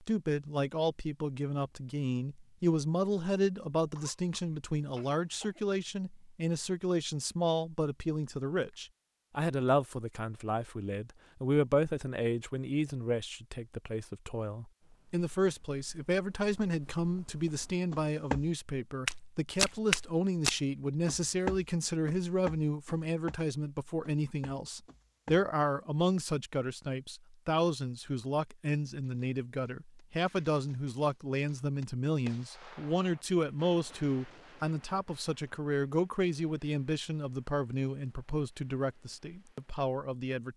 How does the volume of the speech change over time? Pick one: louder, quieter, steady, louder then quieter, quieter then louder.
steady.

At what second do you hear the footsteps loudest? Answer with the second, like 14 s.
20 s.